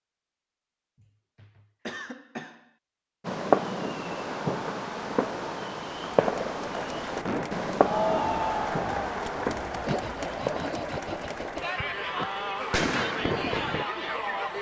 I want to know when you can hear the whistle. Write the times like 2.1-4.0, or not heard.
not heard.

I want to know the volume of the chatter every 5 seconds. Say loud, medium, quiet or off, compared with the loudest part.
off, loud, loud.